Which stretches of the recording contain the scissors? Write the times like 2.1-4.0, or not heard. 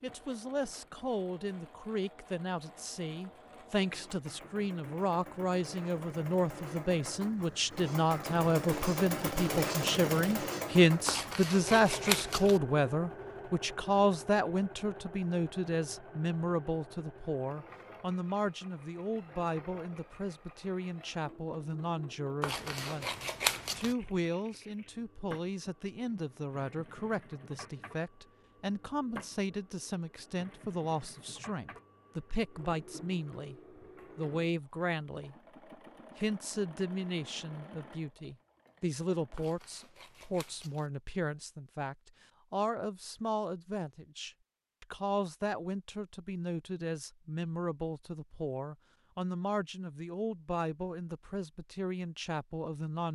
11.1-12.6, 22.4-23.9, 39.4-40.9.